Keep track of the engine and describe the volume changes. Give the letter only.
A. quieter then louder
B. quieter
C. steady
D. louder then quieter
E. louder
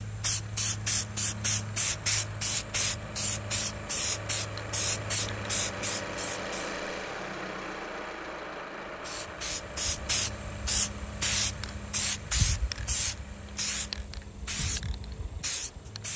D.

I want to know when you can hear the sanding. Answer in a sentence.
The sanding can't be heard in this clip.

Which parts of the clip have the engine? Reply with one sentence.
You can hear the engine from 0.0 to 16.1 s.